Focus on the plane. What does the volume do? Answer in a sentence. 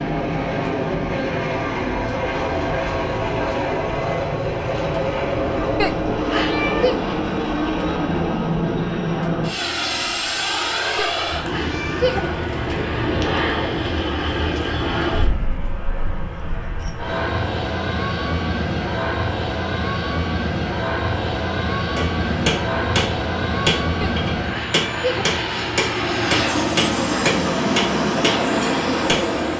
The loudness of the plane stays about the same.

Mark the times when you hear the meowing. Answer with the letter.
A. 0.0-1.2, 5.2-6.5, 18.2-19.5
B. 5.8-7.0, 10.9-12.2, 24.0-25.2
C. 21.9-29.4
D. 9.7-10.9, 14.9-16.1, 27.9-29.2
B.